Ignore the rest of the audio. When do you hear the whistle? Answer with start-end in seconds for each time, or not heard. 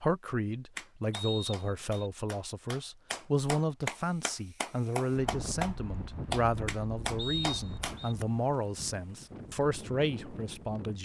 1.1-2.1, 7.2-8.2.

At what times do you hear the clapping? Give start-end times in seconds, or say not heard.
0.8-8.2.